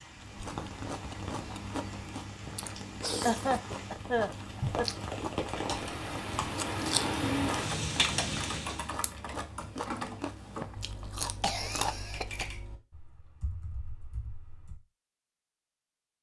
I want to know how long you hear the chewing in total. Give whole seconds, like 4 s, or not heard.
12 s.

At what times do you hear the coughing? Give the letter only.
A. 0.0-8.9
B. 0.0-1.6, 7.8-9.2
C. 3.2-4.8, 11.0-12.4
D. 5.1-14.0
C.